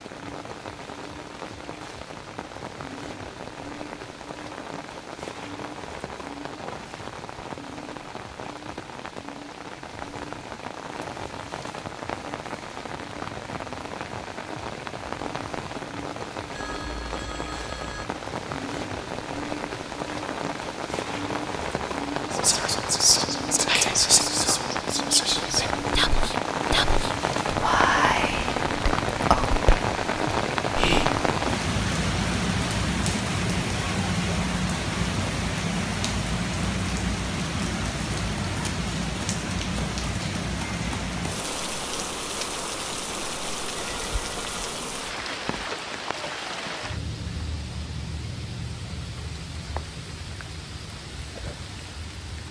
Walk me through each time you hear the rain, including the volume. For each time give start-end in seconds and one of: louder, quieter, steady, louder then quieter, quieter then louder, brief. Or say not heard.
0.0-52.4 louder then quieter.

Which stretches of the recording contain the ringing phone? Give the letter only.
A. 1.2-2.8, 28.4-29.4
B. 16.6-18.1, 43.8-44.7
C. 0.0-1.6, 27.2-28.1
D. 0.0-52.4
B.